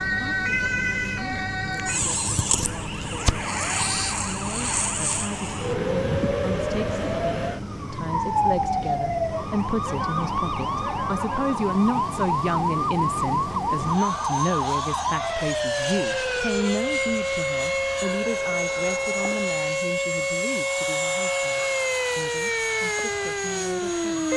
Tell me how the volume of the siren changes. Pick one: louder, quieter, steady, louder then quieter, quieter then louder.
steady.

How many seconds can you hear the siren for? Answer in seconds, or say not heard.
24 s.